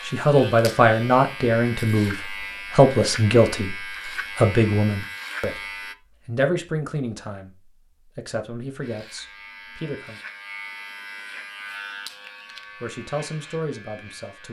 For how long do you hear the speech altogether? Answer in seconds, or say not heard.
11 s.